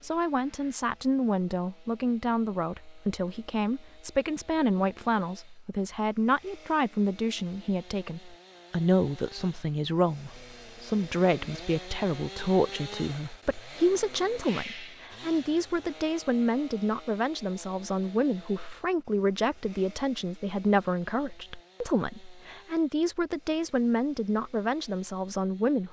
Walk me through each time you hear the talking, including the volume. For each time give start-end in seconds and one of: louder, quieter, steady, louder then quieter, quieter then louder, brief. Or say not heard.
0.0-25.8 steady.